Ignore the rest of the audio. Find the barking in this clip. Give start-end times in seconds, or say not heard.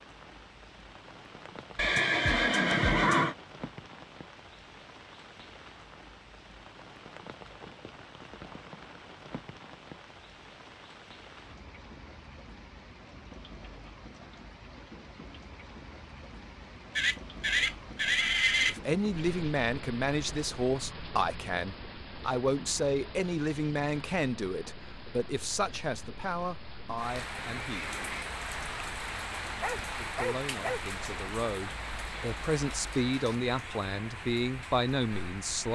29.6-30.8.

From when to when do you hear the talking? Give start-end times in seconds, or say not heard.
18.6-27.9, 29.9-35.7.